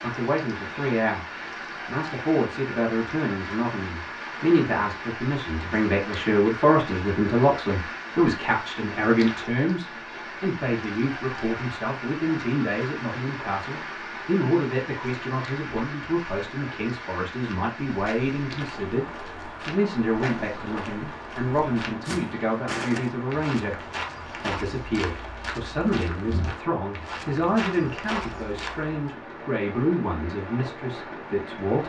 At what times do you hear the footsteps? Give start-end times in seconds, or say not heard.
17.3-29.1.